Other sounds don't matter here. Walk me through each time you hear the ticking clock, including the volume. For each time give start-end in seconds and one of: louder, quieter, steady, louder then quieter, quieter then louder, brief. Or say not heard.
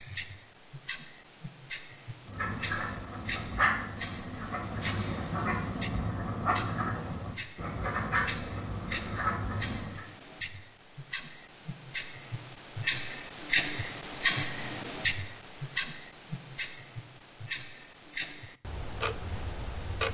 0.0-20.1 louder then quieter.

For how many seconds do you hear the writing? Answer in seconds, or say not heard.
8 s.